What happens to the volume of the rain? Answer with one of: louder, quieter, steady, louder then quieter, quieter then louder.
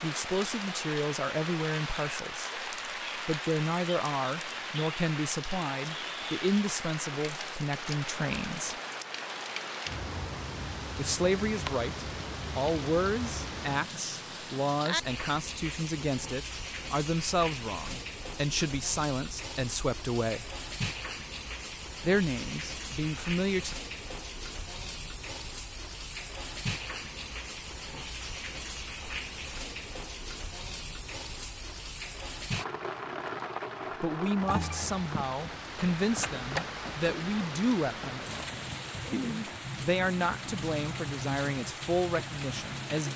steady.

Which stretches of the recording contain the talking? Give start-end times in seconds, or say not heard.
0.0-8.8, 10.9-20.5, 22.0-23.8, 34.0-43.1.